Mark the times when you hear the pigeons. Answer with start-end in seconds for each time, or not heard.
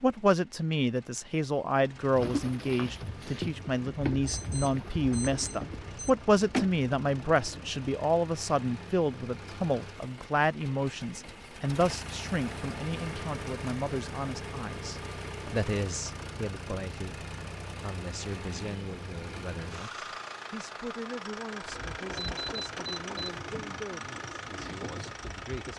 2.1-7.8, 21.6-25.7.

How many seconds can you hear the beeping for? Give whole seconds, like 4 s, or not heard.
3 s.